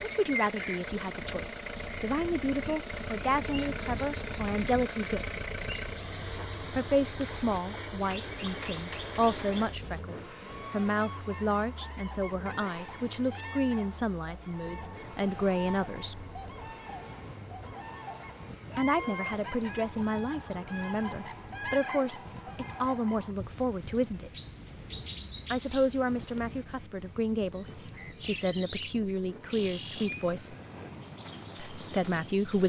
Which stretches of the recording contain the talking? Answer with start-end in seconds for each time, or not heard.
0.0-5.3, 6.8-16.2, 18.8-24.3, 25.5-30.6, 31.6-32.6.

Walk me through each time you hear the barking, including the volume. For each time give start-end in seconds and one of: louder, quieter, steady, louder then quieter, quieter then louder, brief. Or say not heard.
not heard.